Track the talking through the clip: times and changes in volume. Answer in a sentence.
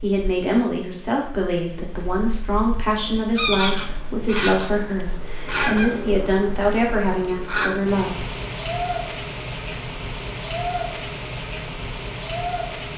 You can hear the talking from 0.0 to 8.2 s, at a steady volume.